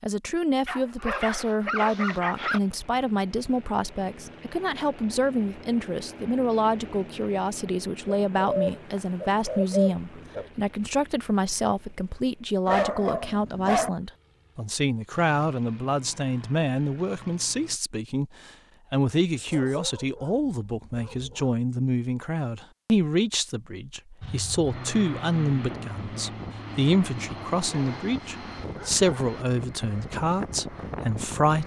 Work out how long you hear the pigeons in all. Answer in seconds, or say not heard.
2 s.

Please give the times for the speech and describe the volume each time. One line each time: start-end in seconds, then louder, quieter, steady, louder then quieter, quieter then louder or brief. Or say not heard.
0.0-31.6 steady.